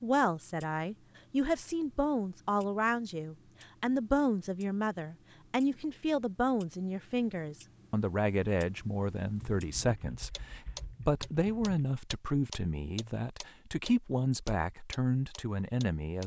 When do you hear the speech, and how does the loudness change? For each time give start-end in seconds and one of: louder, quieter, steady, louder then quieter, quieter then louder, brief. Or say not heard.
0.0-16.2 steady.